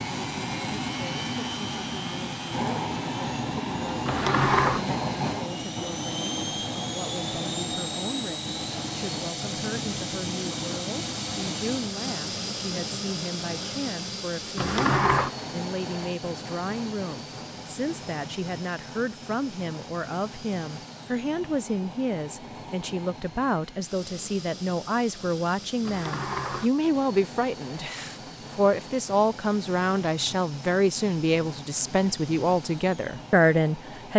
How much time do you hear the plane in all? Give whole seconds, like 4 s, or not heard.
34 s.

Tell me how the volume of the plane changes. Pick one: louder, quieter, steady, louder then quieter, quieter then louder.
quieter.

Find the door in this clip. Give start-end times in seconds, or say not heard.
4.0-4.8, 14.6-15.3, 25.8-26.7.